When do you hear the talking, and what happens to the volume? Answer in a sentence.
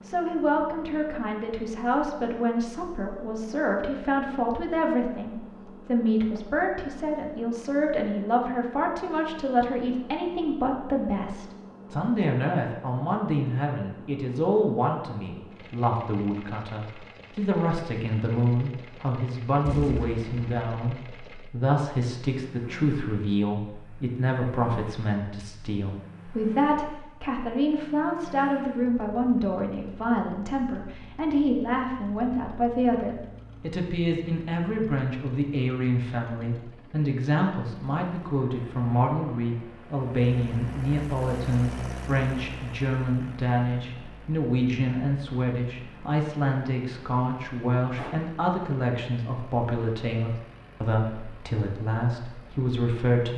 You can hear the talking from 0.1 to 53.3 s, at a steady volume.